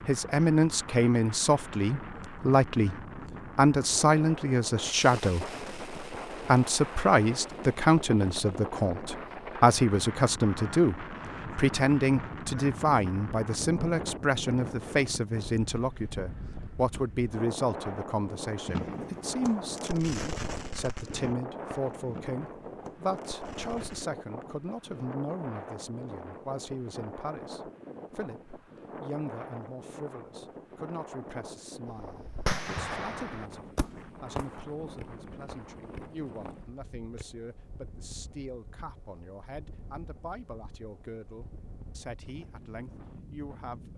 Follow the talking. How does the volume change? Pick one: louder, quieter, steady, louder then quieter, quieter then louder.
quieter.